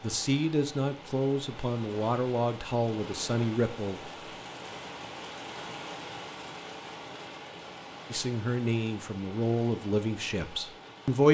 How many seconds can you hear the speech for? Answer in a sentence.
You can hear the speech for 7 seconds altogether.